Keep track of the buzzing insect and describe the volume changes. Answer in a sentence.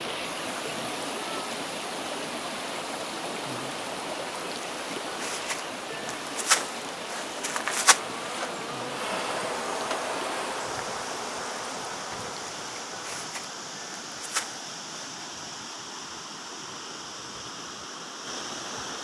The volume of the buzzing insect goes up, then down.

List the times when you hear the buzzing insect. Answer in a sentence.
You can hear the buzzing insect from 0.0 to 15.1 s.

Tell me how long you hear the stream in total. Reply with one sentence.
You can hear the stream for 19 seconds altogether.